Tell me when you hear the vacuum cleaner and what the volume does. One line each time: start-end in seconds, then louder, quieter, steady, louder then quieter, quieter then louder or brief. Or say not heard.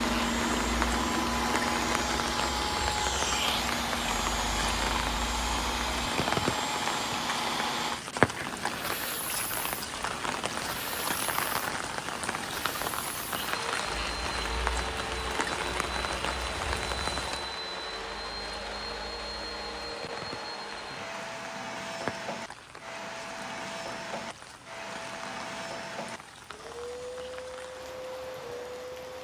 0.0-29.1 quieter.